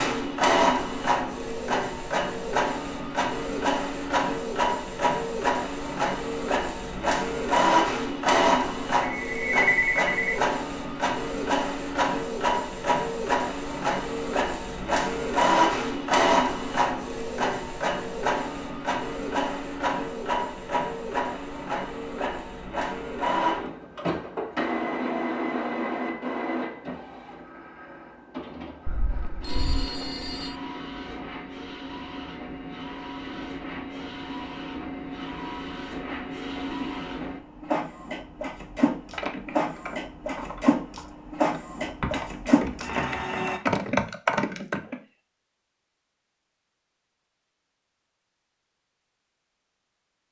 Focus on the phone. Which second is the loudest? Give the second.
10 s.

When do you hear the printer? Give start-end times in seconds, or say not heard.
0.0-43.6.